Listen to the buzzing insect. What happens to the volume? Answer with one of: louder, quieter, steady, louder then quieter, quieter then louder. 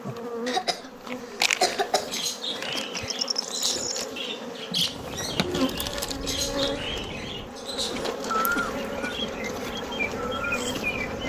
steady.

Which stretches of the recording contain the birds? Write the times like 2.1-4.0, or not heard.
1.9-11.2.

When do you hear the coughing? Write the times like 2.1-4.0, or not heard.
0.5-2.1, 7.9-9.2.